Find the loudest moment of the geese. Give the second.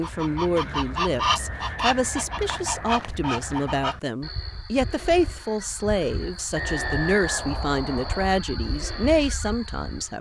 1 s.